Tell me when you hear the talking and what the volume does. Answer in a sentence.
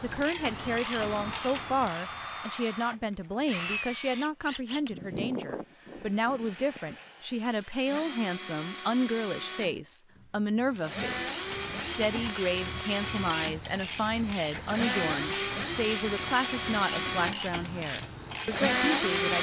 The talking can be heard from 0.0 to 19.3 s, at a steady volume.